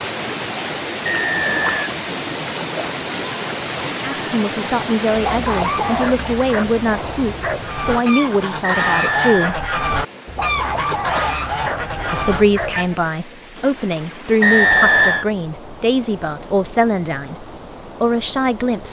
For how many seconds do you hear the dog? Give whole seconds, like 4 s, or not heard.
5 s.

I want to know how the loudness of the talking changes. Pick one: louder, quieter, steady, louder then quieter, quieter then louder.
steady.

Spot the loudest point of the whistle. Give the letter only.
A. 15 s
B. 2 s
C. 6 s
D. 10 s
A.